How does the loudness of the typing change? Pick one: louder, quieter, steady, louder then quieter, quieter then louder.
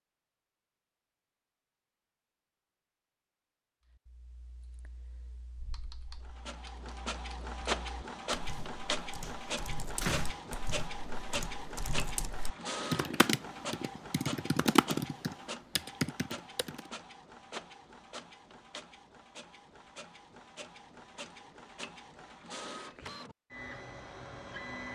louder.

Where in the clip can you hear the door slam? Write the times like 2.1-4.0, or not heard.
9.2-10.4.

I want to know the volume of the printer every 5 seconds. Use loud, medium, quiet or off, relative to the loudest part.
off, loud, loud, medium, medium.